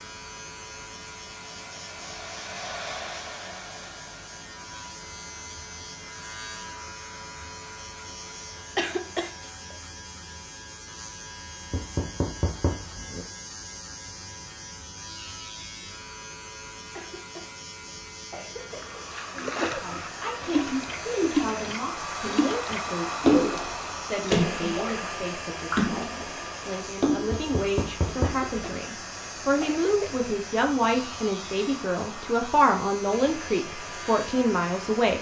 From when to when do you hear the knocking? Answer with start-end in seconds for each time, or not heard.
11.7-13.2, 27.2-28.8.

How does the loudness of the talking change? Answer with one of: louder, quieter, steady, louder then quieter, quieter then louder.
louder.